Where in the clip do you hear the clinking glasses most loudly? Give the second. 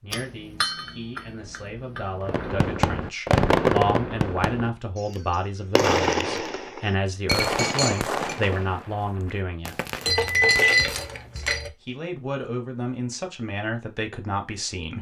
11 s.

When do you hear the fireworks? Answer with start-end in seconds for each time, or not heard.
2.2-11.1.